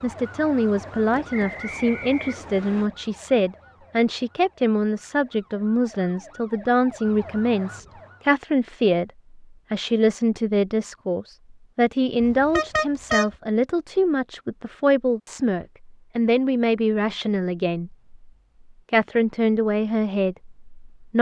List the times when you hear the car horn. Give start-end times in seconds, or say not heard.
12.2-13.3.